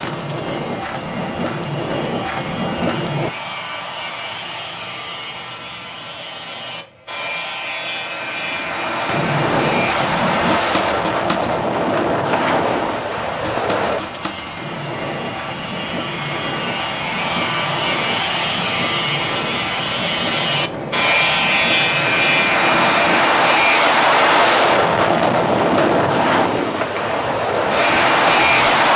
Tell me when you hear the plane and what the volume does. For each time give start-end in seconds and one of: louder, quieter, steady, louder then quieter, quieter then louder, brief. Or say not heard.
0.0-28.9 louder.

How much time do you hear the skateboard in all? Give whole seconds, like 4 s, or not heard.
24 s.